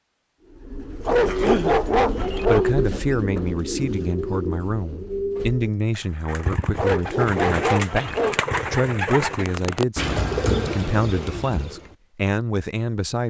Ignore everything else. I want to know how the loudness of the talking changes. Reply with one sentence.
The loudness of the talking stays about the same.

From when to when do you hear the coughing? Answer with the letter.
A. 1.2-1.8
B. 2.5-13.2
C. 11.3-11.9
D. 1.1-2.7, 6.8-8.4
A.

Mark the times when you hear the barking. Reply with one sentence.
You can hear the barking from 1.1 to 2.7 s and from 6.8 to 8.4 s.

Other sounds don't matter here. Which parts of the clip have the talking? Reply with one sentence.
The talking can be heard from 2.5 to 13.2 s.